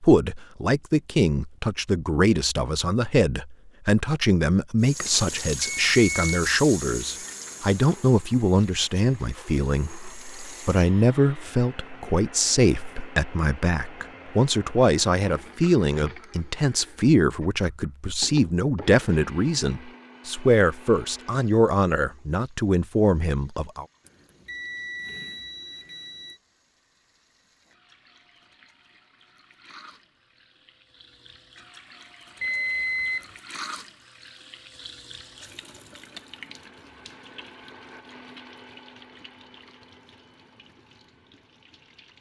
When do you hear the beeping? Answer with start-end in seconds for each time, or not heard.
5.1-6.3, 24.1-26.4, 32.4-33.4.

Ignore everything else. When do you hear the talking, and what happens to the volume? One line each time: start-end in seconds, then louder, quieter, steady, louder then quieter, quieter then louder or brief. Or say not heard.
0.0-23.9 steady.